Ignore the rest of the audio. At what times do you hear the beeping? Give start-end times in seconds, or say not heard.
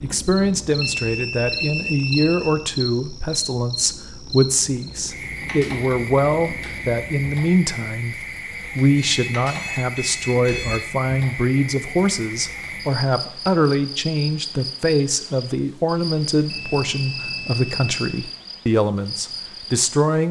0.8-2.6, 8.9-10.8, 16.5-18.2.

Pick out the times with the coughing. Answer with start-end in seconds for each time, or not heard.
not heard.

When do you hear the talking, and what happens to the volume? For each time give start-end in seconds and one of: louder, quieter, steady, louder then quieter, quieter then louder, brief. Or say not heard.
0.0-20.2 steady.